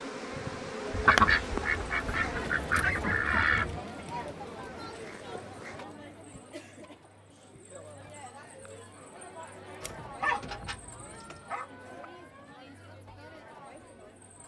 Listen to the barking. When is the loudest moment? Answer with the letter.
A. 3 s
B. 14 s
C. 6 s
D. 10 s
D.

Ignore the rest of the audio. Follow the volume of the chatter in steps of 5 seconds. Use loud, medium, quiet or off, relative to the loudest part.
loud, medium, medium.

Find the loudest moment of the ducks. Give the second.
1 s.